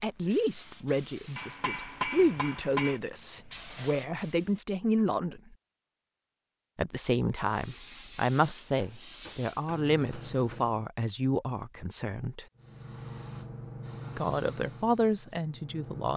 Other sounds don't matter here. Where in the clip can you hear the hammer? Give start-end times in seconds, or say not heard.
1.4-3.0, 8.8-10.7.